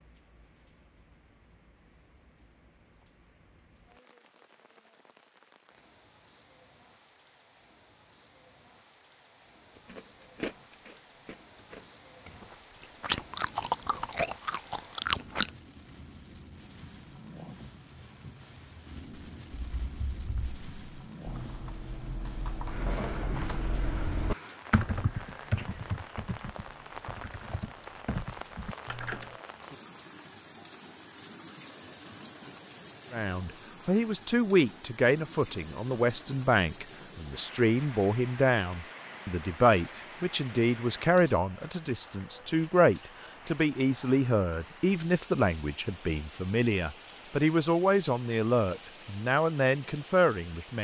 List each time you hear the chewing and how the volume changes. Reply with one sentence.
You can hear the chewing from 9.8 to 15.5 s, getting quieter then louder.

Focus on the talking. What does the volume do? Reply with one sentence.
The volume of the talking stays about the same.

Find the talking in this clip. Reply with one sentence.
You can hear the talking from 33.1 to 50.7 s.